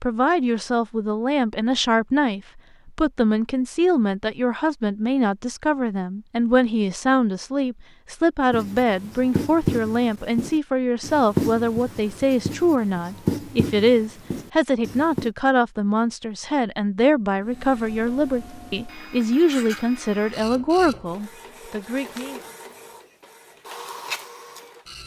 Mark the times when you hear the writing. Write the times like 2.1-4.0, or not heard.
8.5-15.3.